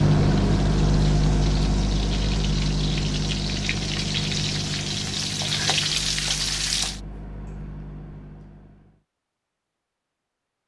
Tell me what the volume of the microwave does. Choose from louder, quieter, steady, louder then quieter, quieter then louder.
quieter.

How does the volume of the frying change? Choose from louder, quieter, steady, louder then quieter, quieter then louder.
louder.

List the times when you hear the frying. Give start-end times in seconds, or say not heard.
0.0-7.0.